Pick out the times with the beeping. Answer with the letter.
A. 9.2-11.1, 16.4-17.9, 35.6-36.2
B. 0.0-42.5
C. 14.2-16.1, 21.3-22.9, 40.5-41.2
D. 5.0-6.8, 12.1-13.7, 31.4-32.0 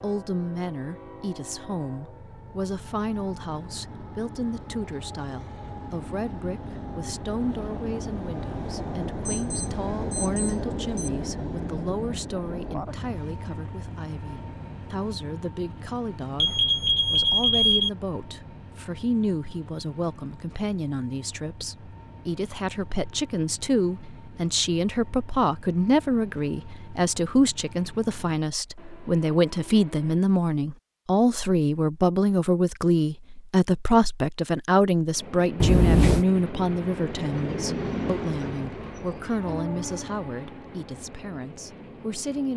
A.